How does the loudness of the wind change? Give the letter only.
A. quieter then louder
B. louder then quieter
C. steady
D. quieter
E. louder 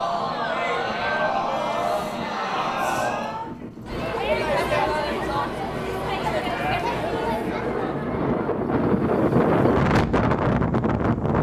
E.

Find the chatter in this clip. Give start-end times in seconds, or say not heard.
0.0-8.5.